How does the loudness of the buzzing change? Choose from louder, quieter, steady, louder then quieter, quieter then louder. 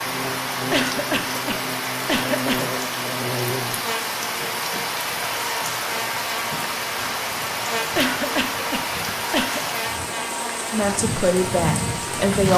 steady.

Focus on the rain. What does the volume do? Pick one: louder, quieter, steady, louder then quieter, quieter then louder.
steady.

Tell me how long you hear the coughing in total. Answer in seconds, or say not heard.
4 s.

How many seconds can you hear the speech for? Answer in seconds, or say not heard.
2 s.